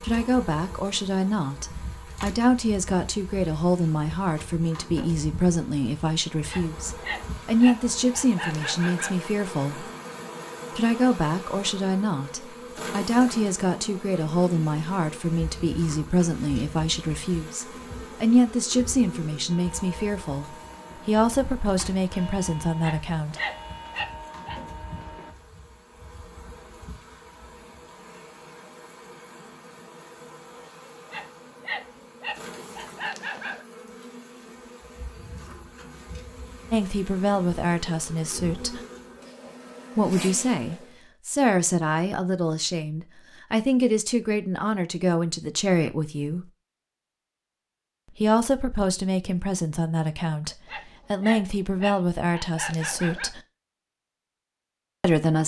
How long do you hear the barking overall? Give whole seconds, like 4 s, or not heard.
10 s.